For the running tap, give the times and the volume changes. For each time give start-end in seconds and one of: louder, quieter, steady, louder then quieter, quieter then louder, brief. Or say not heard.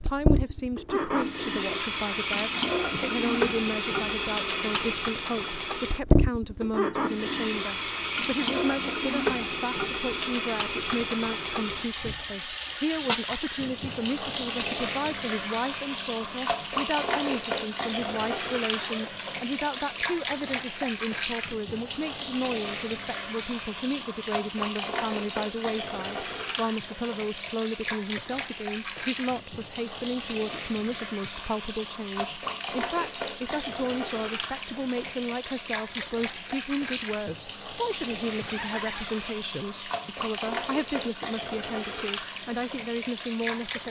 0.0-43.8 quieter.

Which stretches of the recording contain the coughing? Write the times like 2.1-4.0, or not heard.
not heard.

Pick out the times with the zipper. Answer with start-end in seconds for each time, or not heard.
18.7-19.1, 38.3-39.4.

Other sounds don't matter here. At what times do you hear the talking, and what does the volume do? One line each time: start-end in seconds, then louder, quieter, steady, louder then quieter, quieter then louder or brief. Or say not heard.
0.0-43.8 steady.